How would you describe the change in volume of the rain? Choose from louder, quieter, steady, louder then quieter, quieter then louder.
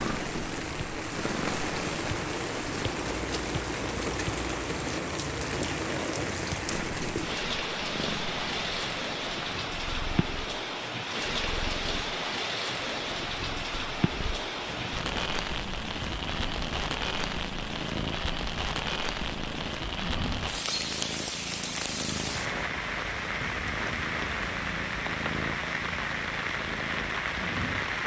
steady.